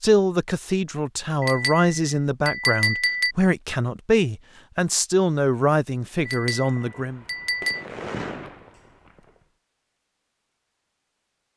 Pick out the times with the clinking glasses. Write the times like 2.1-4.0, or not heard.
1.4-3.4, 6.2-7.8.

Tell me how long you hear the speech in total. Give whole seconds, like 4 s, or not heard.
7 s.